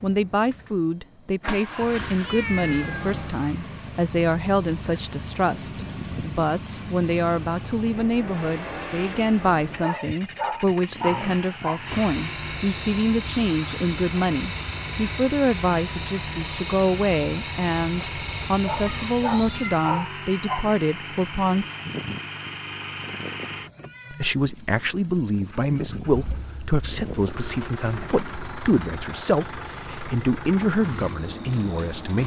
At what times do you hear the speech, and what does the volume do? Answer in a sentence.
You can hear the speech from 0.0 to 21.6 s, at a steady volume; and from 24.1 to 32.2 s, at a steady volume.